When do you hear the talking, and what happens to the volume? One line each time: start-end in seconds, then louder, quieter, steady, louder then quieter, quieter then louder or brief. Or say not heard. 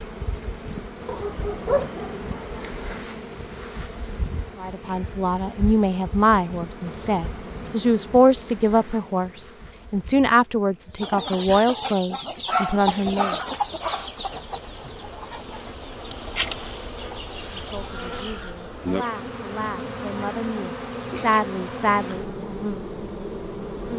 4.6-13.3 steady
17.4-22.4 louder.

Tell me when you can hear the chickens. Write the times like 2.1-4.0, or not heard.
10.9-18.5.